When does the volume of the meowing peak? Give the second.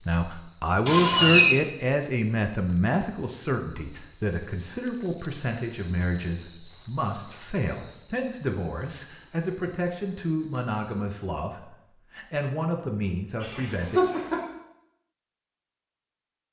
1 s.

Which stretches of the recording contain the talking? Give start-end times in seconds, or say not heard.
0.1-14.0.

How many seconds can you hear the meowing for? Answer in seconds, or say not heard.
2 s.